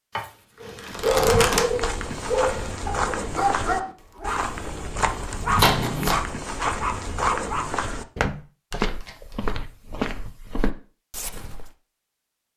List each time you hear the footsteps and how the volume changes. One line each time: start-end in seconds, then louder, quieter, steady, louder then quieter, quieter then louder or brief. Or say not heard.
1.1-11.7 steady.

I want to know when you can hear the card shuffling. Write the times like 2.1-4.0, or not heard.
0.1-1.7, 5.5-6.2, 8.7-9.5.